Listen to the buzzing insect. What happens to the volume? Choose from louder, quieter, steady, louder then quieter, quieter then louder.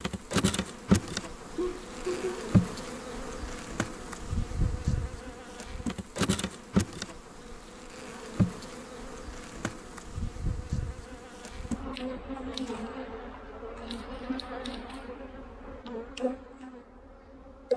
quieter.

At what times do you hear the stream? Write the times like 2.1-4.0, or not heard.
not heard.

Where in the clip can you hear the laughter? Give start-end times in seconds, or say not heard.
1.6-2.5.